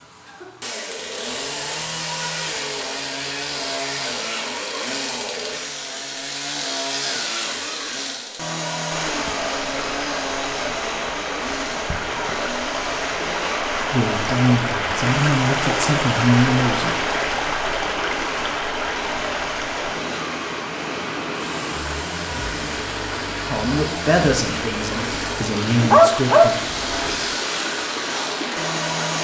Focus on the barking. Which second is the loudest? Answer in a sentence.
The loudest moment of the barking is at 26 seconds.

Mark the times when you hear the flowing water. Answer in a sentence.
You can hear the flowing water from 8.9 to 29.2 s.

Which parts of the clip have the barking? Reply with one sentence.
The barking can be heard from 25.6 to 27.2 s.